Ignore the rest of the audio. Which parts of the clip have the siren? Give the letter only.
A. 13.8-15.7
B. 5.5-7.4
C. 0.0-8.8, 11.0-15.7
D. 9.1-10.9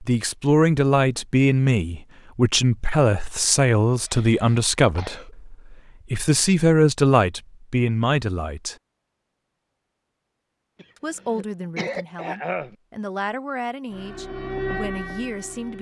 A.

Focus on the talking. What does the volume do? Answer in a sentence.
The volume of the talking goes down.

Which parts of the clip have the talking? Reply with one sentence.
The talking can be heard from 0.0 to 8.8 s and from 11.0 to 15.7 s.